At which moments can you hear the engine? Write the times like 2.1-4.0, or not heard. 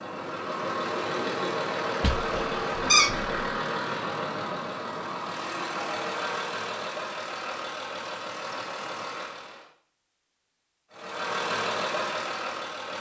0.0-9.7, 10.9-12.9.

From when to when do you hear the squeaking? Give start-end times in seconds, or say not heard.
2.0-3.3.